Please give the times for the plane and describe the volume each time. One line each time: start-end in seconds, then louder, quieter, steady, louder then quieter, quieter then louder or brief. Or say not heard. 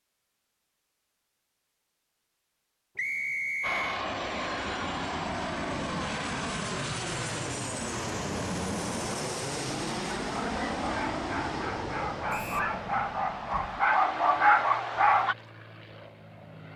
3.6-16.7 quieter.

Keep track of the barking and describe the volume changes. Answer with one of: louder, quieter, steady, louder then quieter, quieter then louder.
louder.